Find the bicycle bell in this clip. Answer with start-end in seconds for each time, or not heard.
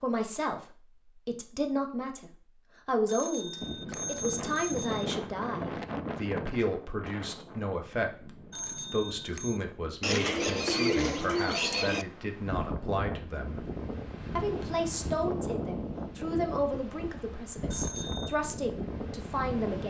3.0-5.1, 8.5-9.6, 17.7-18.4.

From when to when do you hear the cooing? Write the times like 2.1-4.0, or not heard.
10.0-12.1.